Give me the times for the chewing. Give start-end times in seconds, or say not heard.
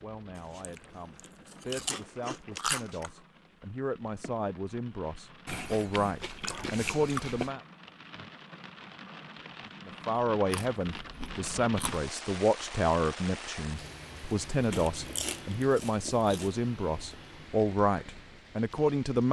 0.3-3.1, 5.5-7.5, 10.5-12.1, 14.7-16.6.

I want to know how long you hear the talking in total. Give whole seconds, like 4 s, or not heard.
17 s.